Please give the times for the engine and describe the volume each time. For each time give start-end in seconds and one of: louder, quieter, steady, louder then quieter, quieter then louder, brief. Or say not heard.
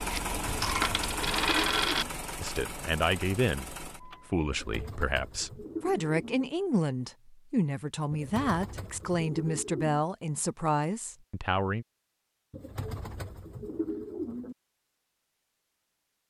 0.0-4.5 quieter.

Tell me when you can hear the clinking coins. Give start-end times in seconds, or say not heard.
0.1-2.0.